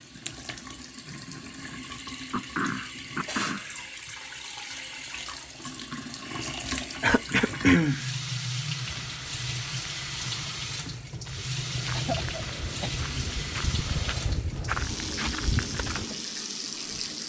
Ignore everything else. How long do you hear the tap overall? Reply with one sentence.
You can hear the tap for 17 seconds altogether.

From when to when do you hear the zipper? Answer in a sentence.
You can't hear the zipper here.